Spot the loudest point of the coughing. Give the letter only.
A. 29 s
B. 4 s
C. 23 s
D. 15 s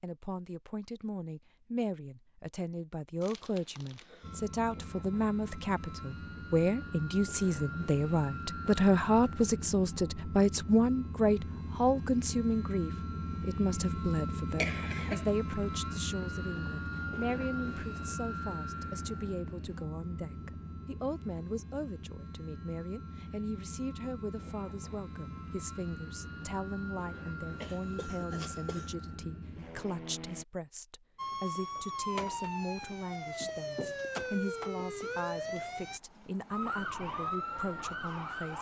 D.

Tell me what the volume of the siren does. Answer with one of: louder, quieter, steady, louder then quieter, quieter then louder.
steady.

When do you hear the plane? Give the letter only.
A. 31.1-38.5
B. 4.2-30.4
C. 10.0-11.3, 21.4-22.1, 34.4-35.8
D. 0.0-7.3
B.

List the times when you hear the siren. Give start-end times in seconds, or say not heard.
31.1-38.5.